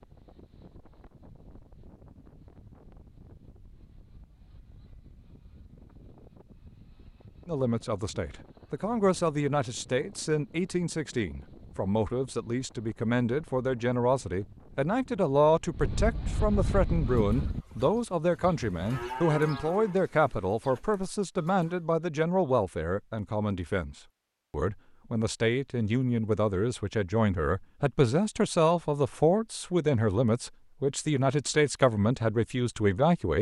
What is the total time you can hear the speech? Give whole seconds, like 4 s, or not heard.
26 s.